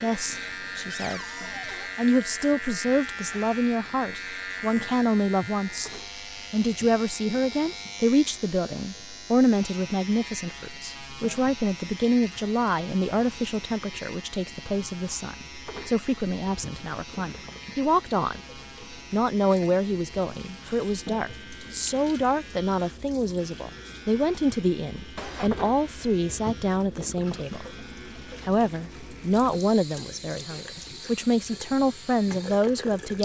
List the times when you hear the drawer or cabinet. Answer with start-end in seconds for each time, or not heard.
0.9-1.9, 25.1-25.7.